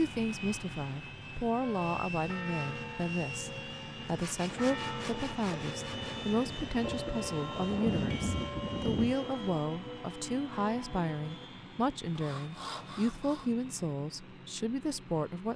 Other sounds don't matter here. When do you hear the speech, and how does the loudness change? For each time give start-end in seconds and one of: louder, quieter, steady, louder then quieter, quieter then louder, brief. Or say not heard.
0.0-15.5 steady.